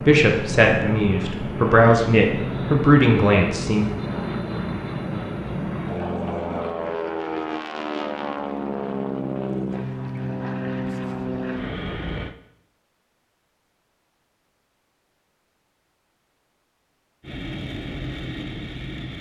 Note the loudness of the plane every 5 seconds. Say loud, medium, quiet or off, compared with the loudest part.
loud, loud, loud, medium.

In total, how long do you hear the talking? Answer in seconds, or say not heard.
4 s.